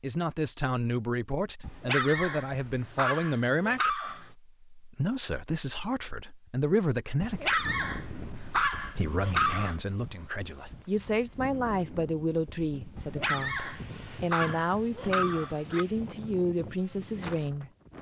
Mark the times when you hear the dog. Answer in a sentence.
You can hear the dog from 1.6 to 4.3 s, from 7.2 to 9.8 s and from 12.9 to 15.8 s.